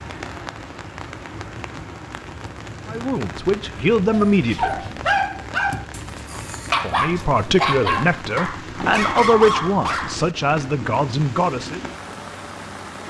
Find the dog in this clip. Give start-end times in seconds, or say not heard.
4.1-10.2.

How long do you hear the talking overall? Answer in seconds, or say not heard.
7 s.